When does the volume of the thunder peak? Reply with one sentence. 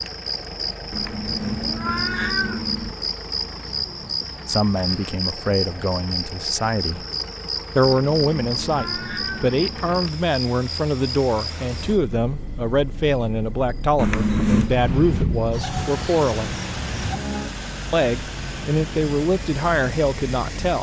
The loudest moment of the thunder is at 15 seconds.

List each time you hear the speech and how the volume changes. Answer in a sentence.
The speech can be heard briefly from 4.5 to 7.0 s; from 7.8 to 16.6 s, at a steady volume; and briefly from 17.9 to 20.7 s.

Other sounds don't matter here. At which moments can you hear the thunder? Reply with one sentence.
You can hear the thunder from 14.7 to 17.2 s.